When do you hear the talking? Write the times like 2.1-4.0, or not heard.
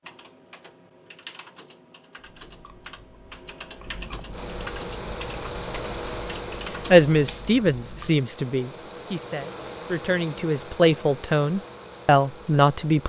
6.9-13.0.